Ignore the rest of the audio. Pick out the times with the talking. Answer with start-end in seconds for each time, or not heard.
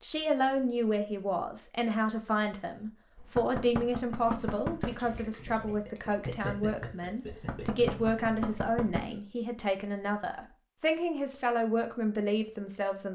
0.0-13.0.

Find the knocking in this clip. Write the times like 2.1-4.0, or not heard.
3.1-5.0, 7.3-9.1.